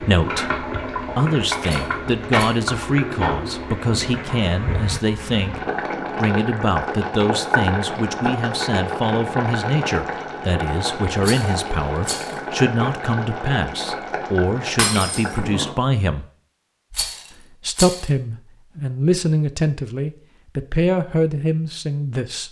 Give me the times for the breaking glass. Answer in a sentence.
The breaking glass can be heard from 14.8 to 15.4 s.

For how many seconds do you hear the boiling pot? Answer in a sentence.
The boiling pot can be heard for 16 seconds in total.